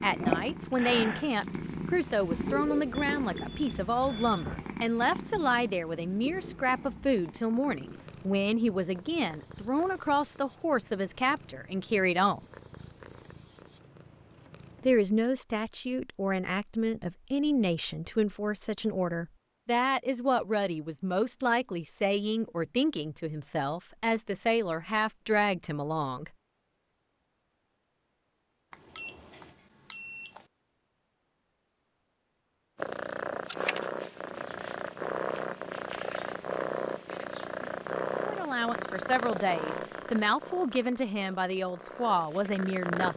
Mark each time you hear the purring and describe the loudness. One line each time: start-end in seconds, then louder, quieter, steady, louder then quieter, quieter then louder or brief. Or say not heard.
0.0-14.9 quieter
32.8-43.1 quieter.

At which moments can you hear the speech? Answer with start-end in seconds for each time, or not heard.
0.0-12.4, 14.8-26.3, 38.2-43.1.